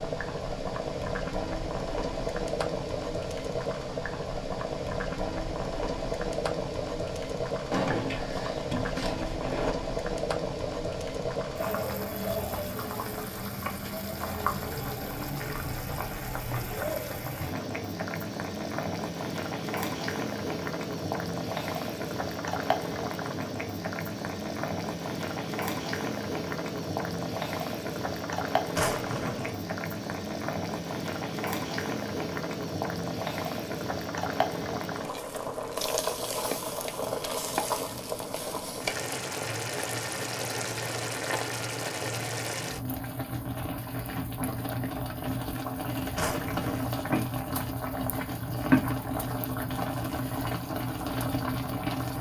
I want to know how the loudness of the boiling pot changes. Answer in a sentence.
The volume of the boiling pot stays about the same.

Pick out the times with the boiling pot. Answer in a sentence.
The boiling pot can be heard from 0.0 to 52.1 s.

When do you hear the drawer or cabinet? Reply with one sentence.
The drawer or cabinet can be heard from 7.7 to 9.8 s, from 28.7 to 29.6 s and from 46.1 to 47.0 s.